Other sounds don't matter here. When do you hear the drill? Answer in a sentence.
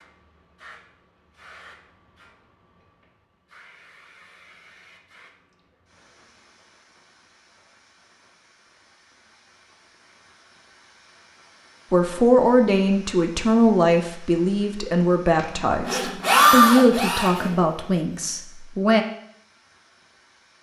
The drill can be heard from 15.3 to 18.3 s.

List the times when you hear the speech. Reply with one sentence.
You can hear the speech from 11.9 to 19.1 s.